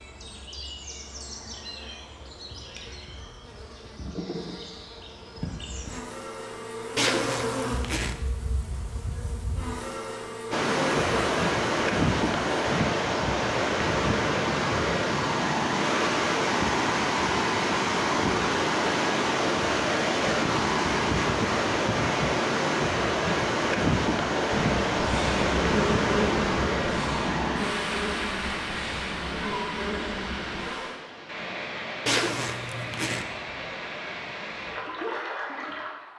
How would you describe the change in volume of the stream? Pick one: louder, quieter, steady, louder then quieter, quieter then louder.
quieter.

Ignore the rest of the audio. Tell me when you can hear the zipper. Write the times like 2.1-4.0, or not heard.
7.0-8.2, 32.0-33.2.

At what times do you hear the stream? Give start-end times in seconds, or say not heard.
10.5-36.1.